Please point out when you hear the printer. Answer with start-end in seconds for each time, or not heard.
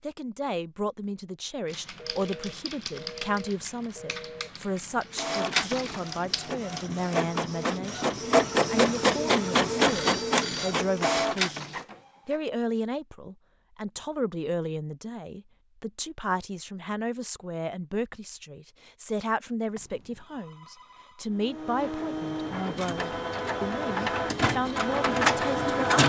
5.1-12.4, 21.3-26.0.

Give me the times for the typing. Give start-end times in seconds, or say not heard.
1.6-7.0.